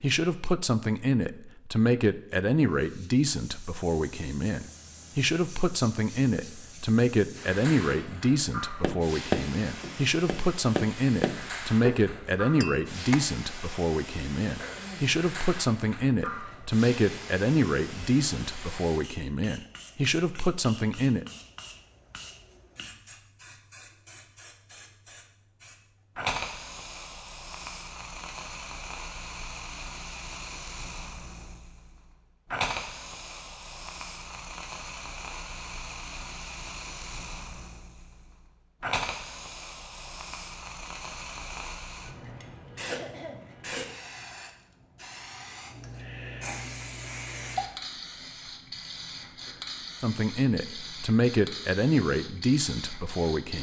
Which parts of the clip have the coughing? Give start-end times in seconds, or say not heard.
14.6-15.2, 42.9-43.4.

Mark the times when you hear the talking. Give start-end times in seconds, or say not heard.
0.0-21.2, 50.0-53.5.